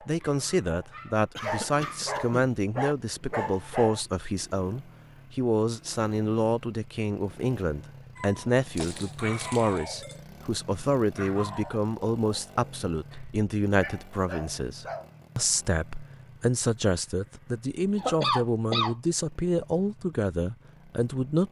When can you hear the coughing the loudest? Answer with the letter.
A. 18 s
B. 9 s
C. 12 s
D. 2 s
A.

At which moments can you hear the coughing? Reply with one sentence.
The coughing can be heard from 1.4 to 2.5 s, from 8.3 to 9.2 s and from 17.9 to 18.9 s.